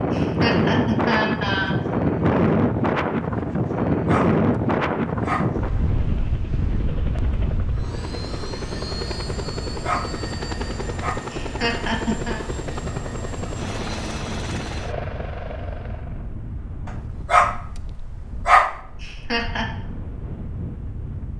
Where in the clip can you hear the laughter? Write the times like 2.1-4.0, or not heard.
0.1-1.8, 11.3-12.4, 19.0-19.6.